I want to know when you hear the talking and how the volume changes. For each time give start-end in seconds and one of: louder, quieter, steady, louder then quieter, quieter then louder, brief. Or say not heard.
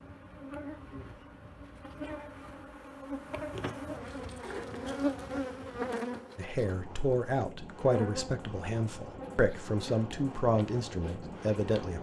6.3-11.9 steady.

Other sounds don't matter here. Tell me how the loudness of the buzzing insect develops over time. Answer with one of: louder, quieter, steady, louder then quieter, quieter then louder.
louder then quieter.